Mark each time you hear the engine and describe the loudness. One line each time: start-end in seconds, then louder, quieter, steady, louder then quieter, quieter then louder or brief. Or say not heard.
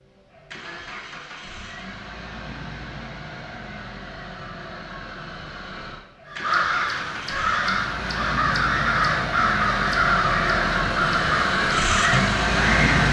0.0-13.0 louder.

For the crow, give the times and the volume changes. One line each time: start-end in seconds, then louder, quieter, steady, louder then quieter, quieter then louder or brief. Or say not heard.
6.2-13.0 steady.